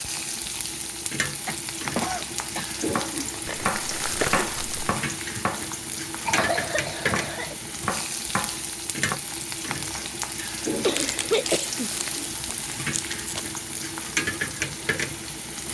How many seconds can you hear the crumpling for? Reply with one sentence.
The crumpling can be heard for 4 seconds in total.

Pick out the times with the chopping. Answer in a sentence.
You can hear the chopping from 2.9 to 9.2 s.